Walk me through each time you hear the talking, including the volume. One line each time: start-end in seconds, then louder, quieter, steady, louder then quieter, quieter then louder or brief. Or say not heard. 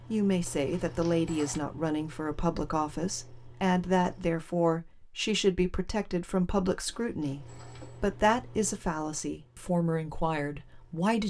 0.1-11.2 steady.